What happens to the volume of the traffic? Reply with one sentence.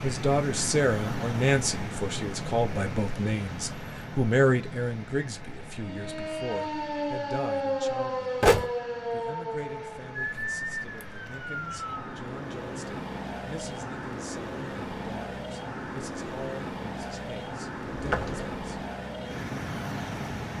The volume of the traffic goes down, then up.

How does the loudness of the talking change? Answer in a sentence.
The loudness of the talking goes down.